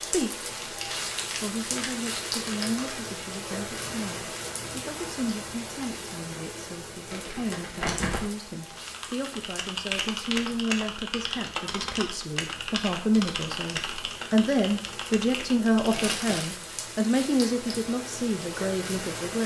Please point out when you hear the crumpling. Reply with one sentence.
You can hear the crumpling from 0.4 to 3.0 s, from 7.1 to 8.2 s and from 15.9 to 16.5 s.